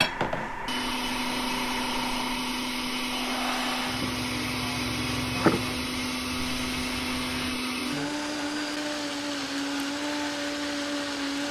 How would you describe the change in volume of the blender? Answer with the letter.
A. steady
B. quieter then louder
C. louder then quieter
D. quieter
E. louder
A.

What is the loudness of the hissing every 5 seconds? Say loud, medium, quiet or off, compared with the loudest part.
loud, loud, medium.